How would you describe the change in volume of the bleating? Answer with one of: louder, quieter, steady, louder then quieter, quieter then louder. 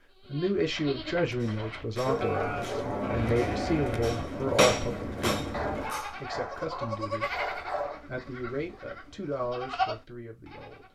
louder.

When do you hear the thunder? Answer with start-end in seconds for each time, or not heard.
2.0-6.0.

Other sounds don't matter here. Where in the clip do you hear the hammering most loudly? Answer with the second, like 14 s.
5 s.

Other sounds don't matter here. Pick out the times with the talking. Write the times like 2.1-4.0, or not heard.
0.2-7.4, 8.1-10.8.